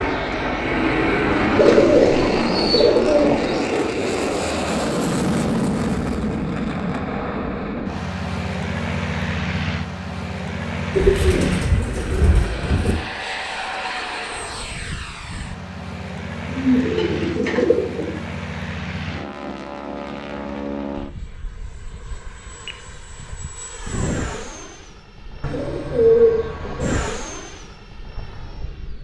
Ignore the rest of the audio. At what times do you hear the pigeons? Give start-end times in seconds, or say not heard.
1.6-3.6, 10.9-12.9, 16.4-18.2, 25.4-26.9.